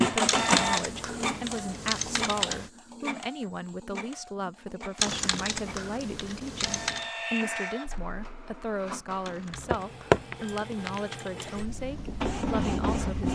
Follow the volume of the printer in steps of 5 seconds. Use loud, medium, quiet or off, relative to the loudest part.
loud, medium, loud.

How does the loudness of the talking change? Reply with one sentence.
The loudness of the talking stays about the same.